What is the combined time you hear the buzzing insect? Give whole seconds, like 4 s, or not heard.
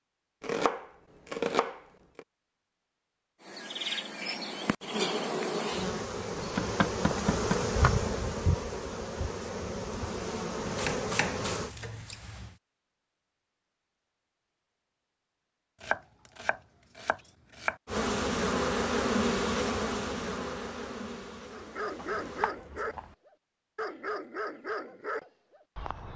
13 s.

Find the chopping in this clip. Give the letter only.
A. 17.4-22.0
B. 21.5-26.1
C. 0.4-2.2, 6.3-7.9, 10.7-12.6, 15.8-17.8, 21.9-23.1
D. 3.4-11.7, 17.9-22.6
C.